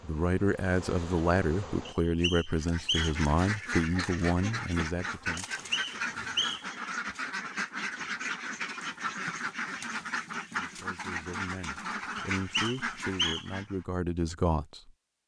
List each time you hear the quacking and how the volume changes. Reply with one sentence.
You can hear the quacking from 2.5 to 13.8 s, at a steady volume.